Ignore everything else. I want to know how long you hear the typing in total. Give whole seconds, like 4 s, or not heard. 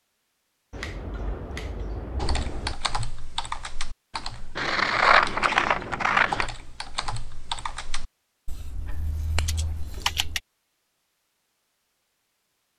8 s.